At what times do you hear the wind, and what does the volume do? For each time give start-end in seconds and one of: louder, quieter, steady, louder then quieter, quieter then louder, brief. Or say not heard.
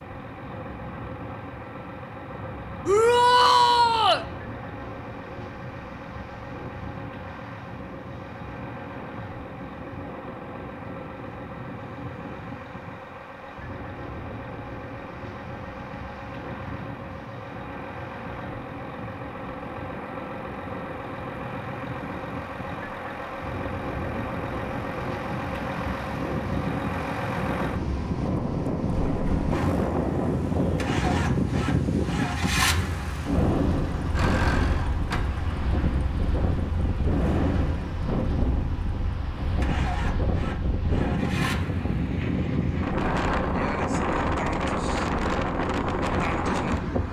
0.0-47.0 louder.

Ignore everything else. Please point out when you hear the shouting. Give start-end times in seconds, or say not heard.
2.9-4.2.